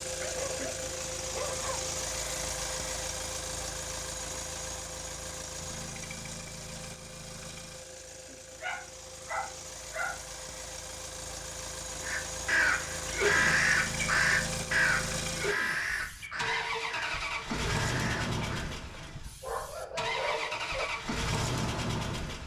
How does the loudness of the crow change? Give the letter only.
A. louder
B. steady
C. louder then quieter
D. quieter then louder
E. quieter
E.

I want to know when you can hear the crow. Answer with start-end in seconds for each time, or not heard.
12.0-18.7.